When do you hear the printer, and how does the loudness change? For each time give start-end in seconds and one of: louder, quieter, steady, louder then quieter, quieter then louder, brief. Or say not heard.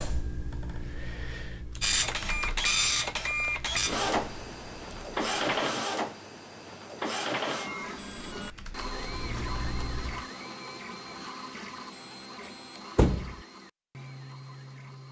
1.8-15.0 quieter.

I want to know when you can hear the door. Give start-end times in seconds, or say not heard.
12.9-13.3.